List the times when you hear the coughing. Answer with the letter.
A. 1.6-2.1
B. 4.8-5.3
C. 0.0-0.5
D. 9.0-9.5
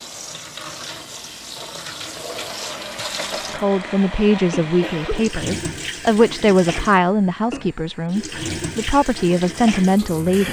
B.